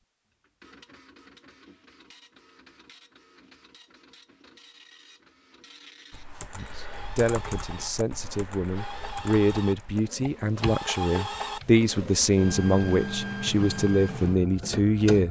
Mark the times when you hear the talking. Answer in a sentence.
You can hear the talking from 6.5 to 15.2 s.